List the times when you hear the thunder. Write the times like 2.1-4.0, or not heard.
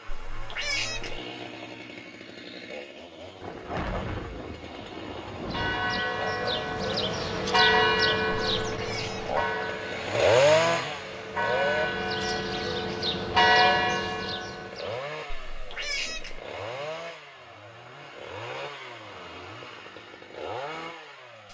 3.4-6.0.